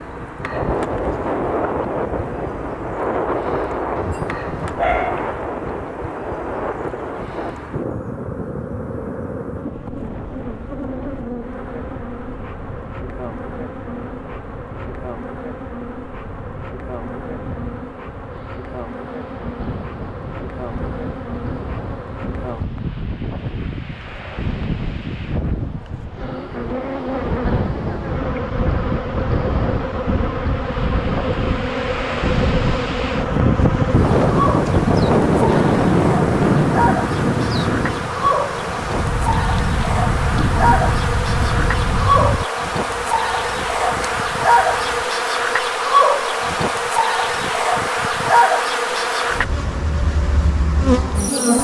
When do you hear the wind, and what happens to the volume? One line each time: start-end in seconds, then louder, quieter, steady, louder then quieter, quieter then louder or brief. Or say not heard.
0.0-42.5 quieter then louder.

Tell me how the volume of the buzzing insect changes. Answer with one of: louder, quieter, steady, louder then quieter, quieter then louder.
louder.